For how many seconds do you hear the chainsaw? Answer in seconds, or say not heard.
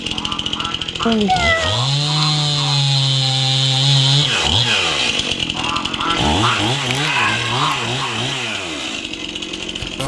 10 s.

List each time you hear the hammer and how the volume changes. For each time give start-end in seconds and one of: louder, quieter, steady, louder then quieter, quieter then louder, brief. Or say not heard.
not heard.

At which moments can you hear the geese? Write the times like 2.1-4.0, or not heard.
0.1-2.9, 5.5-8.2.